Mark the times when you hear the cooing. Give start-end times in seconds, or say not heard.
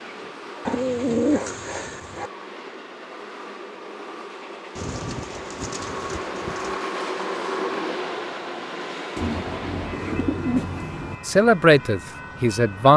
0.7-2.3, 4.8-6.8, 9.2-11.2.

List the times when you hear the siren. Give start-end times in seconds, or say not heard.
not heard.